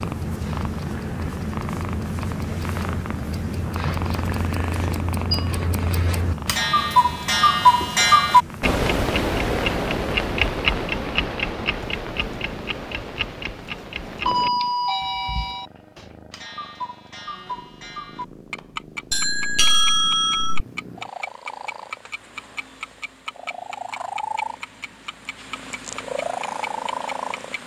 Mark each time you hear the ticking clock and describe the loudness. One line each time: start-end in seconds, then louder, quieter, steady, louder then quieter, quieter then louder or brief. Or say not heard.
0.0-27.6 louder then quieter.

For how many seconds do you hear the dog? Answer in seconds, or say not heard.
not heard.